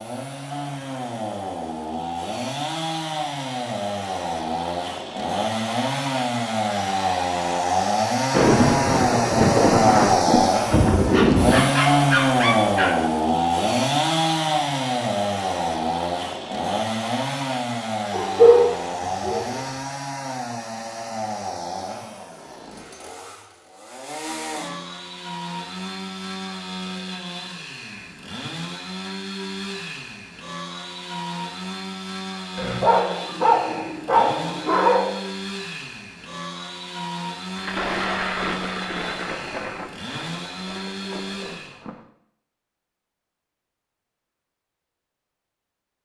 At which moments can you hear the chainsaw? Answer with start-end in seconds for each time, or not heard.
0.0-41.9.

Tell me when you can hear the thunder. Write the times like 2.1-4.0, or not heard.
8.3-11.7, 37.5-42.0.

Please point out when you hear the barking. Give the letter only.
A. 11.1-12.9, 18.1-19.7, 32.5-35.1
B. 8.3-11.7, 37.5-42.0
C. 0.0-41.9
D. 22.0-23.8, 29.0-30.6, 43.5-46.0
A.